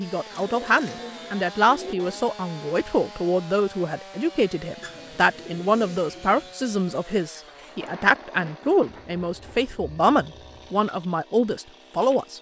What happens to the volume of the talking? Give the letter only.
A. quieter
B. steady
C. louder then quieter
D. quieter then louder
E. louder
B.